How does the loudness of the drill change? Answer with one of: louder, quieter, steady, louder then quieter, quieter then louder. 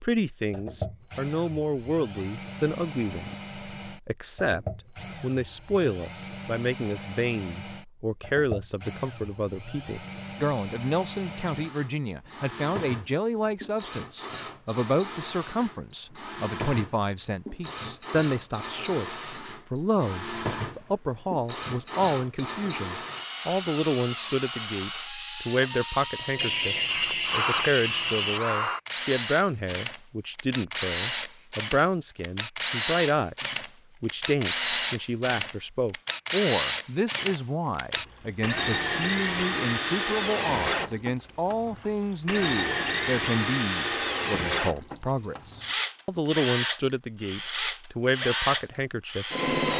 louder.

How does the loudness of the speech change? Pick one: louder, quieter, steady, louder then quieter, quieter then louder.
steady.